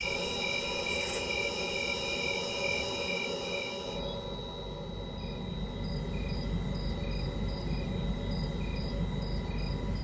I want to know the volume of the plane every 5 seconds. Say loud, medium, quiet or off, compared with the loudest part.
loud, medium.